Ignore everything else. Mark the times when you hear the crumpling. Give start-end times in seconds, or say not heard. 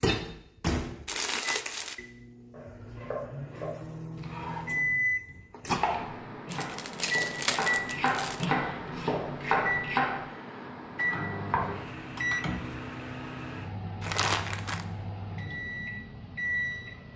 1.1-1.9, 6.5-8.4, 14.0-14.8.